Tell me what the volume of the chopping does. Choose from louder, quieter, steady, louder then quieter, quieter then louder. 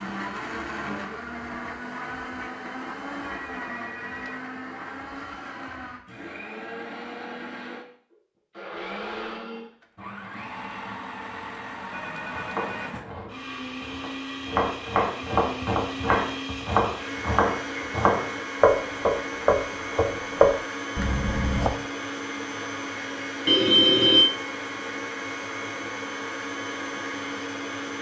louder.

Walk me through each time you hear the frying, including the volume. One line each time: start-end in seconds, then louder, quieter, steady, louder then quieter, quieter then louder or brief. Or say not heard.
not heard.